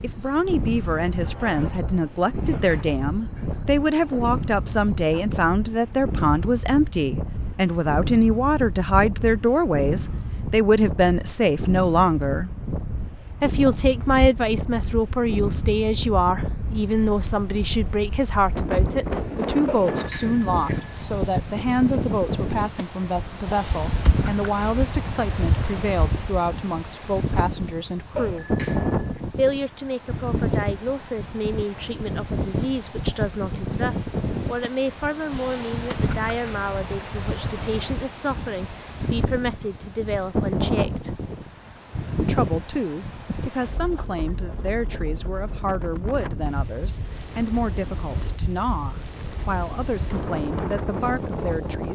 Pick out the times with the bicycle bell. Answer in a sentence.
You can hear the bicycle bell from 19.6 to 21.0 s and from 28.1 to 29.2 s.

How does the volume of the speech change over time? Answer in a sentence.
The loudness of the speech goes down.